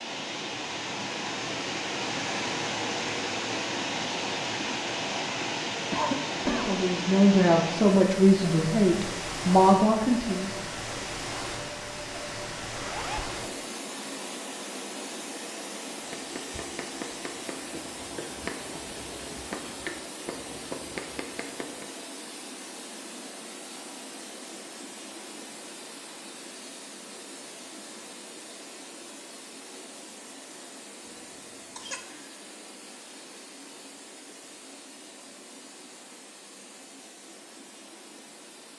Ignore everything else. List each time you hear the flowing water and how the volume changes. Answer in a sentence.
You can hear the flowing water from 0.0 to 38.7 s, getting quieter.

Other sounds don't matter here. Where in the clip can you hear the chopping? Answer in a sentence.
You can hear the chopping from 16.0 to 21.9 s.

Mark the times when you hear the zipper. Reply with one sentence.
The zipper can be heard from 12.8 to 13.3 s.